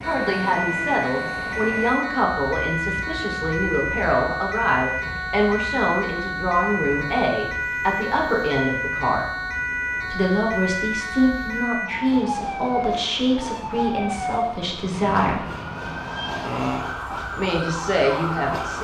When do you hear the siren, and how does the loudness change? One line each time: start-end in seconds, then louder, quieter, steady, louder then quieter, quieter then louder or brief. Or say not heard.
0.0-18.7 steady.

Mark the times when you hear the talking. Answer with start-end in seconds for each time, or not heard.
0.0-9.3, 10.1-15.4, 17.3-18.7.